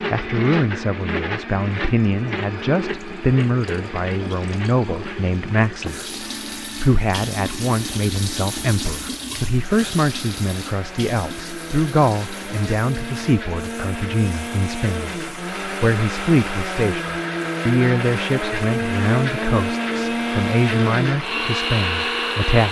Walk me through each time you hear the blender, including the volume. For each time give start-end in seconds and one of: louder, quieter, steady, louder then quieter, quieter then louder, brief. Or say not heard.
0.0-22.6 quieter then louder.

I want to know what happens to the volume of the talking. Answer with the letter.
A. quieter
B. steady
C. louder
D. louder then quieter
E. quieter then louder
B.